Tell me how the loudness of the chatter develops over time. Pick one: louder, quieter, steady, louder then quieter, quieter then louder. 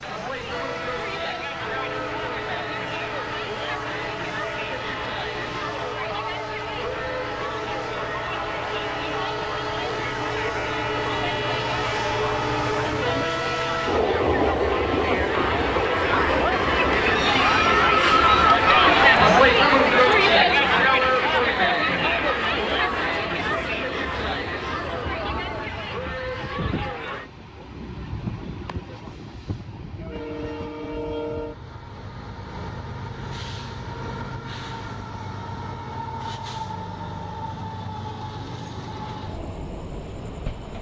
louder then quieter.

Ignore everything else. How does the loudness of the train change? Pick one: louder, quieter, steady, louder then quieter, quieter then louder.
louder then quieter.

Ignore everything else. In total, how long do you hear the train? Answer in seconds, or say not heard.
41 s.